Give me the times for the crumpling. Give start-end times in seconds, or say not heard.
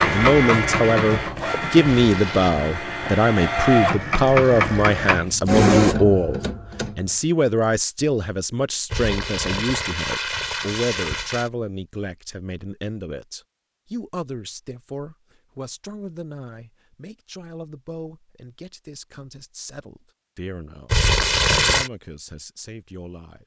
1.9-2.5, 8.9-11.5, 20.9-21.9.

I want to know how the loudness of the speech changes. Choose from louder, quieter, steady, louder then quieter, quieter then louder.
quieter.